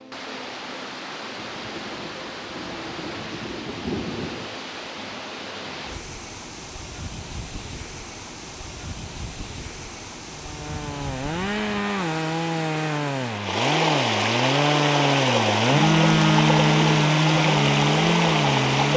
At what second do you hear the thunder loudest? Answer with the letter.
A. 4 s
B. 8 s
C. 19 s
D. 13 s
A.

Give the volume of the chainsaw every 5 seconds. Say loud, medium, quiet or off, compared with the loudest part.
off, off, medium, loud.